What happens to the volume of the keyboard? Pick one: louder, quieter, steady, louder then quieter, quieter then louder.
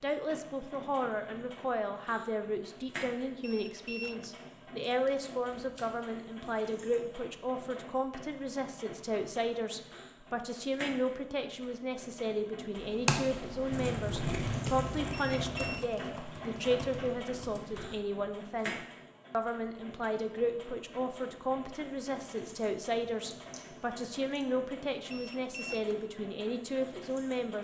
quieter.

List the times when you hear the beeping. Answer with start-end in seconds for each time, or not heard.
3.4-4.3, 15.1-15.8, 25.1-25.9.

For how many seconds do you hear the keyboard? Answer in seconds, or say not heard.
5 s.